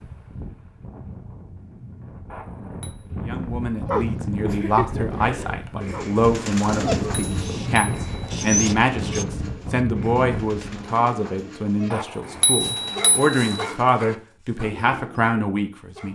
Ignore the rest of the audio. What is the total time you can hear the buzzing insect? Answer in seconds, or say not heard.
not heard.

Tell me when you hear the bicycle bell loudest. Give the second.
13 s.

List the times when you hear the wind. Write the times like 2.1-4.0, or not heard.
0.0-10.9.